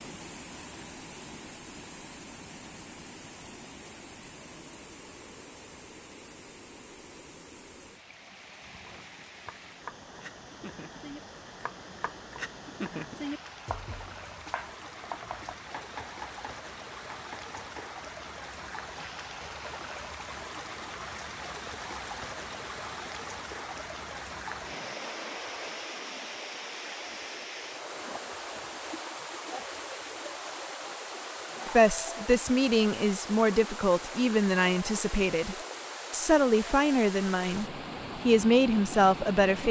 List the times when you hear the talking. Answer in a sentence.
The talking can be heard from 31.6 to 39.6 s.